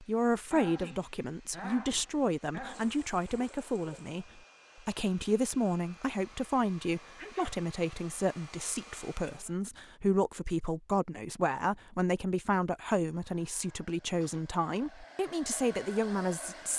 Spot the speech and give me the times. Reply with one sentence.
You can hear the speech from 0.0 to 16.7 s.